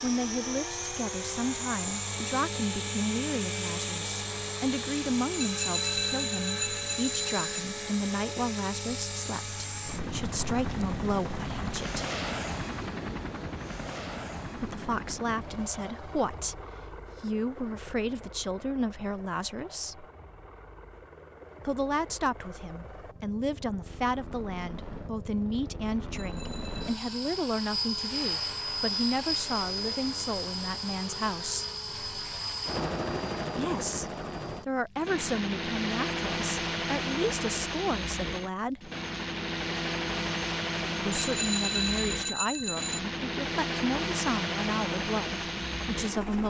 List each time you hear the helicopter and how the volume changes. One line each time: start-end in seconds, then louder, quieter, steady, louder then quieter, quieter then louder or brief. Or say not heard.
0.0-46.4 quieter then louder.